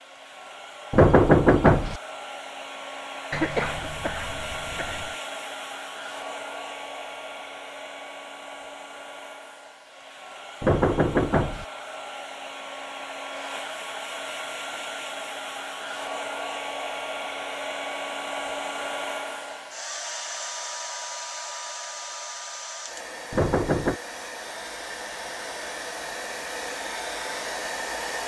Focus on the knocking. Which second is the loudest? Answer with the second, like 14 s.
1 s.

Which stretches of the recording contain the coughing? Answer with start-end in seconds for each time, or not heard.
3.3-5.2.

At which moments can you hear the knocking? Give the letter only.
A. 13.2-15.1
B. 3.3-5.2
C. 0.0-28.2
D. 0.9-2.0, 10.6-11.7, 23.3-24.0
D.